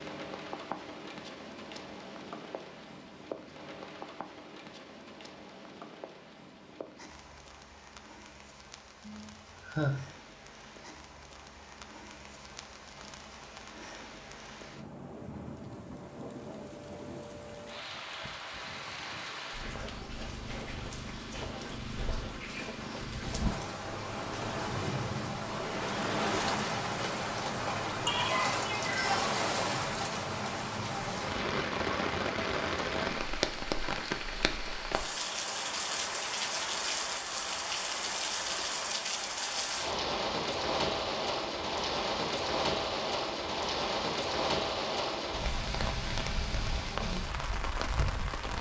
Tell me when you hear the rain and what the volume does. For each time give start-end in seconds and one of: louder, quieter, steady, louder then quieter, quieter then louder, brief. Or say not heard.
0.0-48.5 louder.